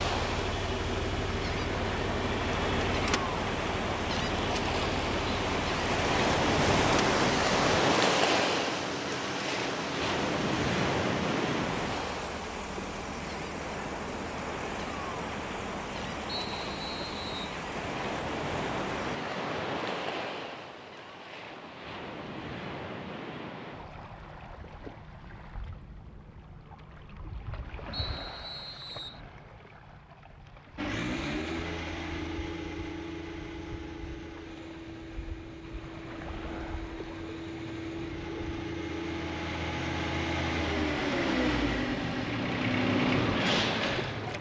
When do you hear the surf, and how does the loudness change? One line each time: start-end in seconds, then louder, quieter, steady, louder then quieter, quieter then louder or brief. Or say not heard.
0.0-44.3 quieter then louder.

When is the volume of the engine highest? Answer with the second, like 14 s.
43 s.